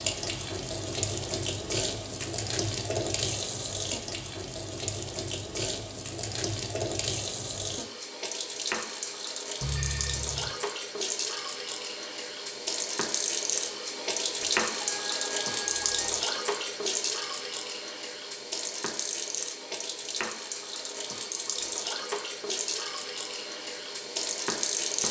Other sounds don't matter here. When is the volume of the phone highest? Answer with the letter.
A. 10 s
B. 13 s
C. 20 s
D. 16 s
A.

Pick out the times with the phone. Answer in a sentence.
The phone can be heard from 9.6 to 10.5 s and from 14.8 to 16.2 s.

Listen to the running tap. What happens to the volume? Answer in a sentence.
The loudness of the running tap stays about the same.